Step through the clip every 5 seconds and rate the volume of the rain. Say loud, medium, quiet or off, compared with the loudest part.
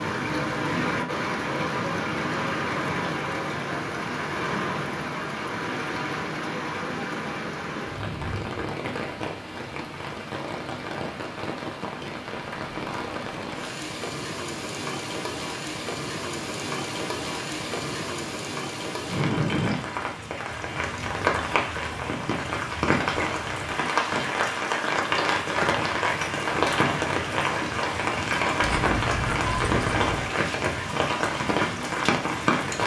loud, medium, medium, medium, loud, loud, loud.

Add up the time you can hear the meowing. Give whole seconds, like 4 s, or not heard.
2 s.